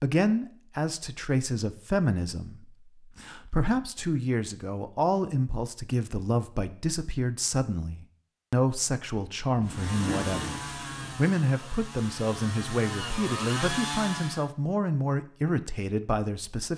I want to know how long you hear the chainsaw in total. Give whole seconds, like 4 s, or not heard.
5 s.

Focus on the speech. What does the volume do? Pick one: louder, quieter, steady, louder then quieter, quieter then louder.
steady.